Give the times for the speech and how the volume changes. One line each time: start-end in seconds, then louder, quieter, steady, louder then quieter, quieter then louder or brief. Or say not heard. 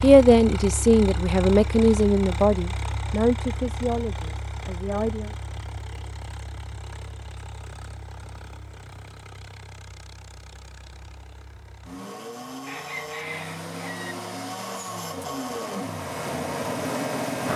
0.0-5.3 quieter.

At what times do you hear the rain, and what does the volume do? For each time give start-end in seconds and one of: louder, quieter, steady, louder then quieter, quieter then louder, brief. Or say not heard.
not heard.